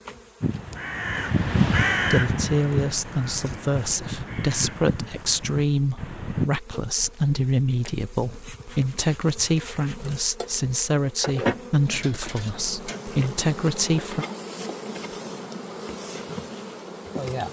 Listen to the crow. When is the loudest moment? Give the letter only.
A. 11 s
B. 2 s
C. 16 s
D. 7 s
B.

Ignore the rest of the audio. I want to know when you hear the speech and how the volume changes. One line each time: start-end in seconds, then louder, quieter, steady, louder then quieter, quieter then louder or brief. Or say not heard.
2.0-14.2 steady.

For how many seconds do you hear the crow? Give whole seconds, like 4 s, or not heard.
6 s.